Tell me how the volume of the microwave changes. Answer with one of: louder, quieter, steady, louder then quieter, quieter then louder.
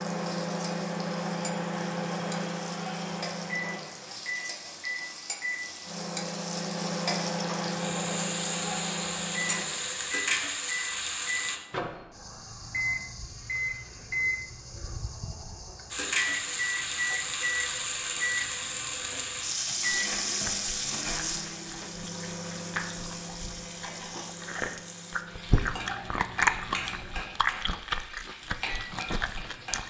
quieter.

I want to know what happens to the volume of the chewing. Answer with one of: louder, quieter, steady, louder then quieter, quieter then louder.
louder then quieter.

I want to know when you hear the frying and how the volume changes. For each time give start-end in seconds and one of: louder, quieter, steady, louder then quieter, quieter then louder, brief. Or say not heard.
0.0-11.6 louder
15.9-29.8 quieter.